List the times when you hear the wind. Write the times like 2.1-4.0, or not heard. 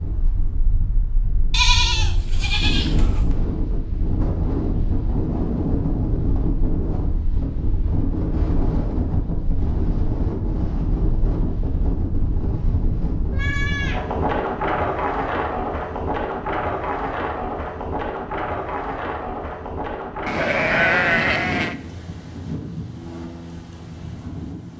0.0-24.7.